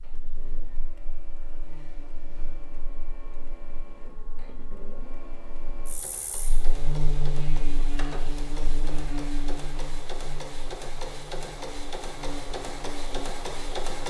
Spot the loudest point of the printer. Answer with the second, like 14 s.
14 s.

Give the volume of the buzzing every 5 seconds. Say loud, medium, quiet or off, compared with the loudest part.
quiet, loud, medium.